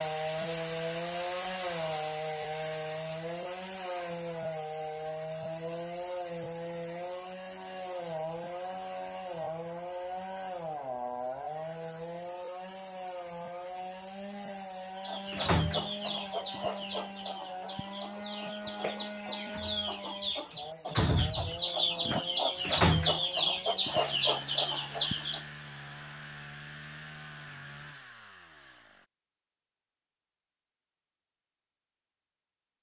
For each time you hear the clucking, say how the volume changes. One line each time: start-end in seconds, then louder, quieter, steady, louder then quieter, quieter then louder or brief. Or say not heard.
14.9-25.4 quieter then louder.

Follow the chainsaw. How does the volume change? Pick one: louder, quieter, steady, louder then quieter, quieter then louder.
quieter.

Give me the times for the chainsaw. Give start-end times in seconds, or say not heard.
0.0-29.1.